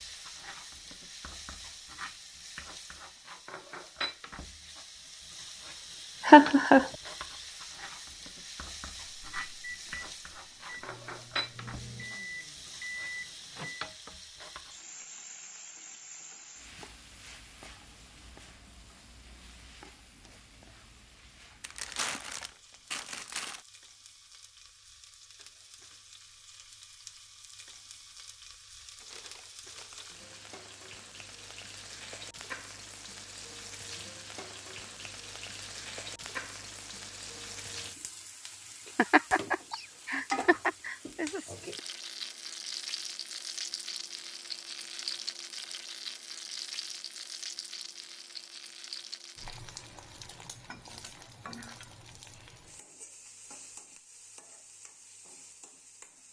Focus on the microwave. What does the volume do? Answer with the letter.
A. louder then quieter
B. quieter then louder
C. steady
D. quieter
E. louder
E.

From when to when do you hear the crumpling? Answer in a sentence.
You can hear the crumpling from 21.6 to 23.6 s and from 28.8 to 30.5 s.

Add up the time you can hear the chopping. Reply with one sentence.
The chopping can't be heard in this clip.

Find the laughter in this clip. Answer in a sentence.
The laughter can be heard from 6.2 to 6.9 s and from 39.0 to 41.4 s.